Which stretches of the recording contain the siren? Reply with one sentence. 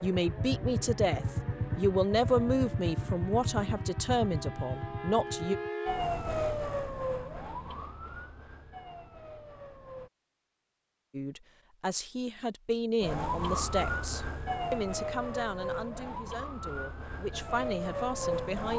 The siren can be heard from 0.0 to 10.1 s and from 13.0 to 18.7 s.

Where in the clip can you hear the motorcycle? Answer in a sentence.
The motorcycle can be heard from 0.0 to 5.7 s.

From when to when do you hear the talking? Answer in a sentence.
You can hear the talking from 0.0 to 5.5 s and from 11.1 to 18.7 s.